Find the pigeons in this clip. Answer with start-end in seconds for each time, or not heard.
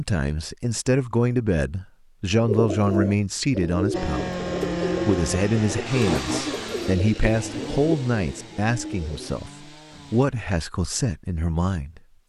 2.4-9.4.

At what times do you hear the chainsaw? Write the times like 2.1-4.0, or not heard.
3.9-10.3.